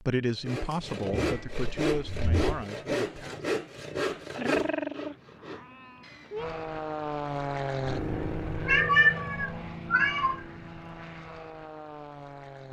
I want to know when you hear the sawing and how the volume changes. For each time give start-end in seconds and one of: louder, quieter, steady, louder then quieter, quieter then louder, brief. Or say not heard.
0.5-6.5 quieter.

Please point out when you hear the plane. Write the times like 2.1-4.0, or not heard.
6.3-12.6.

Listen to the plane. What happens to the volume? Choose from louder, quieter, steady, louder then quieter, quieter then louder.
quieter.